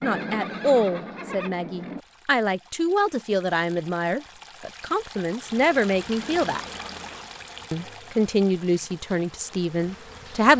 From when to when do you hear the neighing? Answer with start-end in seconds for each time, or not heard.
0.0-2.0, 6.2-7.4.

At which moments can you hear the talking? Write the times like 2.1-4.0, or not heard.
0.0-6.6, 7.7-10.5.